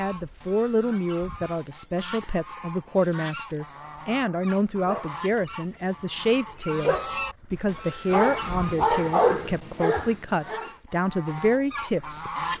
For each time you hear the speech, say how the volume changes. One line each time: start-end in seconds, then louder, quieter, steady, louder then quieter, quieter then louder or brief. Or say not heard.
0.0-12.5 steady.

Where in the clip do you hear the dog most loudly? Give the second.
9 s.